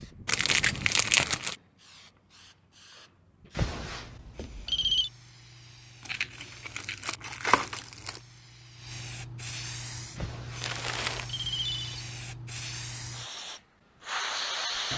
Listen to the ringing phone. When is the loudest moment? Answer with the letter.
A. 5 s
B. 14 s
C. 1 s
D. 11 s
A.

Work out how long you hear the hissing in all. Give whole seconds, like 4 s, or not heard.
15 s.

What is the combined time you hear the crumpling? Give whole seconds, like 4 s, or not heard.
4 s.